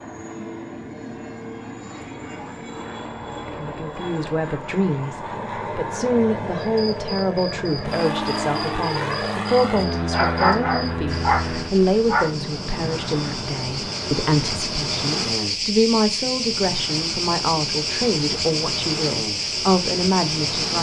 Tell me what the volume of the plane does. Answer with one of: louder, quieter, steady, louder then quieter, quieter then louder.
louder then quieter.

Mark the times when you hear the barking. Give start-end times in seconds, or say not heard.
10.1-12.3.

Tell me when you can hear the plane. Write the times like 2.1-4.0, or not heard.
0.0-20.7.